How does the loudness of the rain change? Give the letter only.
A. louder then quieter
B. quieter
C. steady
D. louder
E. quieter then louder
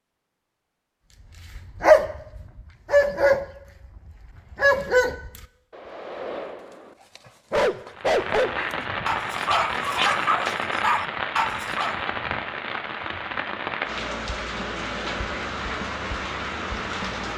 C.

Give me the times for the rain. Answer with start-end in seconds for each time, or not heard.
7.9-17.3.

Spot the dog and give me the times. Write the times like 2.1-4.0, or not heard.
1.6-12.0.